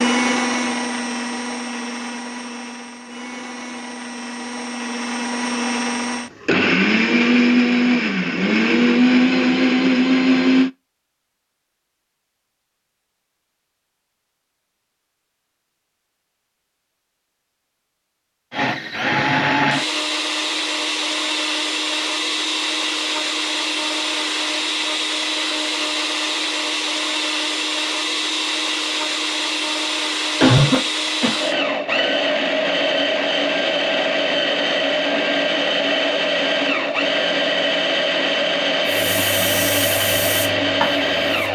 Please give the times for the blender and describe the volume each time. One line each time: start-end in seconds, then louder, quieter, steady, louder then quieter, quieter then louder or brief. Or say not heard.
0.0-10.7 quieter then louder
18.5-41.4 steady.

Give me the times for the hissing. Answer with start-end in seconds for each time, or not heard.
38.9-41.4.